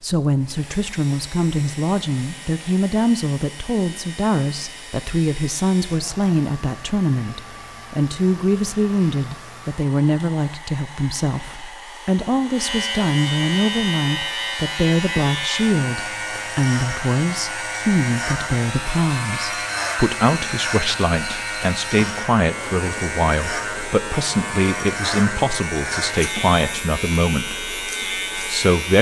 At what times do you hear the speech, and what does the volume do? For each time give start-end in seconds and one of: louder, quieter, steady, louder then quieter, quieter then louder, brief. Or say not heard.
0.0-28.9 steady.